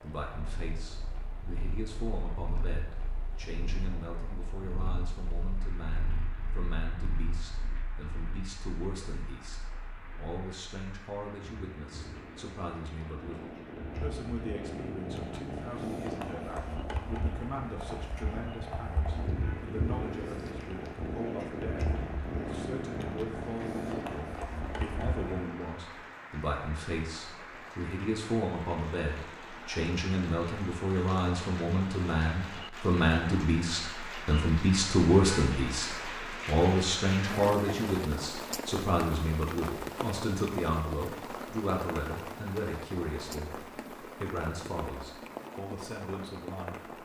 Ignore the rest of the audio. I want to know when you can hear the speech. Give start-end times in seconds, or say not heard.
0.0-46.9.